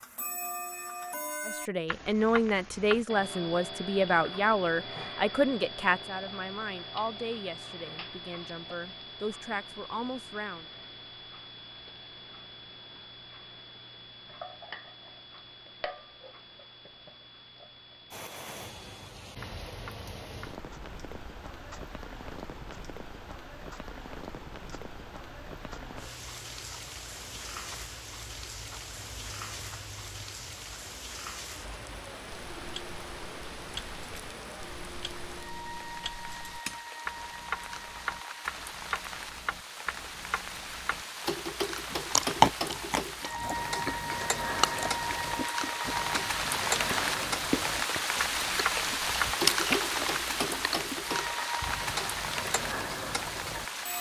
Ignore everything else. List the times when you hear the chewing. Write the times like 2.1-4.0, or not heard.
41.9-51.8.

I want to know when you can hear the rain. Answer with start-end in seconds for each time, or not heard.
18.1-53.9.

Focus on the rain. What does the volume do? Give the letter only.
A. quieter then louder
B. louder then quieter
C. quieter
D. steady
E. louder
E.